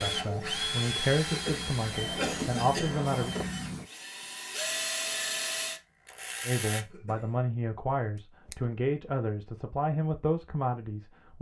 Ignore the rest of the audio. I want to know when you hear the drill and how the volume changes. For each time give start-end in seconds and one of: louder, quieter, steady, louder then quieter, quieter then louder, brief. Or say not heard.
0.0-6.8 quieter then louder.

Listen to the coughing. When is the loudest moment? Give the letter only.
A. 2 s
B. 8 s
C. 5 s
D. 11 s
A.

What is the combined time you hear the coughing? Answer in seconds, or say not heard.
2 s.